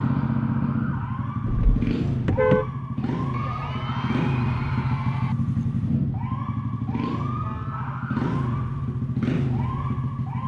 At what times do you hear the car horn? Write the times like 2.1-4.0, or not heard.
1.4-2.7.